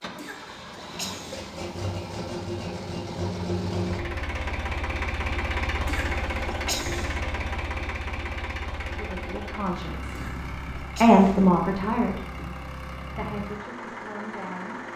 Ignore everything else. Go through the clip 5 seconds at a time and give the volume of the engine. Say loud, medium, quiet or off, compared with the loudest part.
loud, loud, medium.